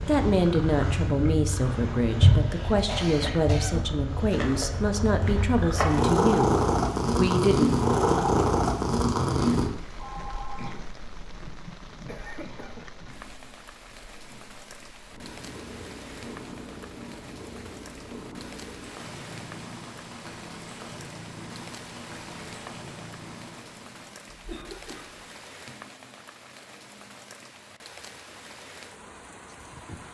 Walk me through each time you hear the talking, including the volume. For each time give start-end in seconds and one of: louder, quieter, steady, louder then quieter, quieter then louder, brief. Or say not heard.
0.1-6.5 steady
7.2-7.8 brief.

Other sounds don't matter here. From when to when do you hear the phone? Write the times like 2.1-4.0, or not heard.
9.9-10.8.